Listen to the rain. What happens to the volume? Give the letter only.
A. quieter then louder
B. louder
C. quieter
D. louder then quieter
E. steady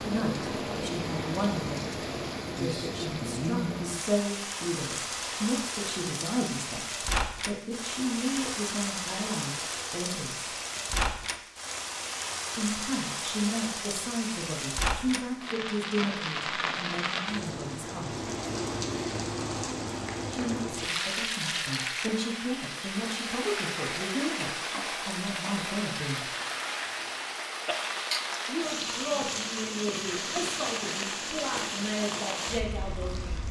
E.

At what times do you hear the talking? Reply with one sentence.
The talking can be heard from 0.0 to 10.5 s, from 12.6 to 18.2 s, from 20.3 to 26.3 s and from 28.4 to 33.4 s.